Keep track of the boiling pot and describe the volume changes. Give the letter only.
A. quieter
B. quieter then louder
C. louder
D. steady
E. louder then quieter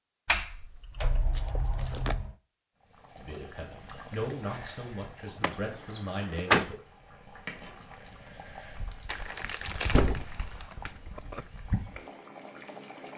B.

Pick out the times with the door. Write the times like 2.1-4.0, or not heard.
0.2-2.4, 5.4-6.7, 9.4-11.4.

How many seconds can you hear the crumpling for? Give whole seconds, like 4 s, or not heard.
3 s.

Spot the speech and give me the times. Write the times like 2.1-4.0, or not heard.
3.1-6.8.